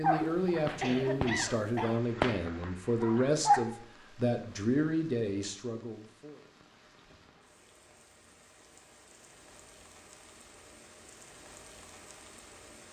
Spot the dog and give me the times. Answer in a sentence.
You can hear the dog from 0.0 to 3.6 s.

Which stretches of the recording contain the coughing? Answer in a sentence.
You can hear the coughing from 0.7 to 2.0 s.